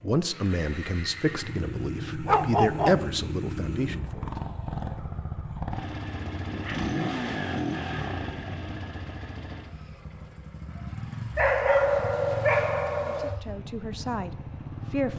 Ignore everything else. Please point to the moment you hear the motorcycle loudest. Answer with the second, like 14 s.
7 s.